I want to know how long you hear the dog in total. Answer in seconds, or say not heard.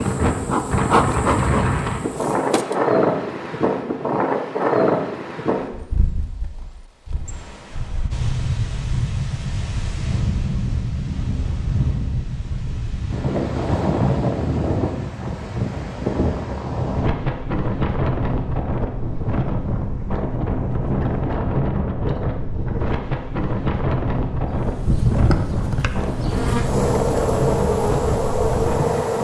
not heard.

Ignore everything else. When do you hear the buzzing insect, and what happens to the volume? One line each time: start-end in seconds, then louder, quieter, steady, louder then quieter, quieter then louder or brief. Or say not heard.
0.0-2.8 brief
24.6-29.1 quieter then louder.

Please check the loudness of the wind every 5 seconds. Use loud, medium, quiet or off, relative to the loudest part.
loud, medium, loud, loud, loud, loud.